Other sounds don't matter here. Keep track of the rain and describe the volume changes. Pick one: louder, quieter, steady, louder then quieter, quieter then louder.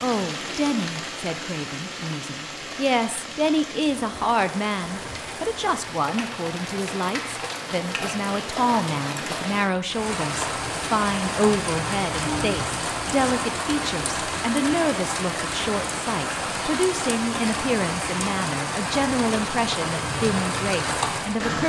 louder.